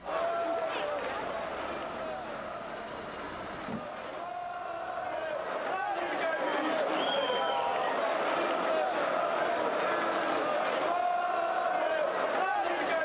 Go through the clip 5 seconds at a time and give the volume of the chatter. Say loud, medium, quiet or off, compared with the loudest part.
medium, loud, loud.